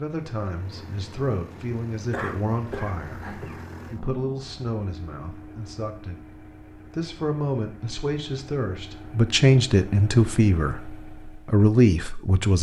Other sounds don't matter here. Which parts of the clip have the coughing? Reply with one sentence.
The coughing can be heard from 2.1 to 3.6 s.